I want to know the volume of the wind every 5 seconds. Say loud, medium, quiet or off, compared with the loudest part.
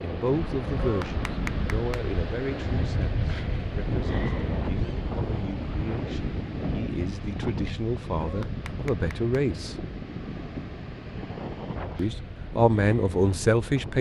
loud, loud, medium.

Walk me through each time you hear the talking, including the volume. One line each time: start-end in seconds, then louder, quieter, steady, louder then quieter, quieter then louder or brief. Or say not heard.
0.0-9.8 quieter then louder
11.9-13.9 brief.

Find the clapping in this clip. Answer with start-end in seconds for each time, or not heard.
0.8-2.0, 8.2-9.3.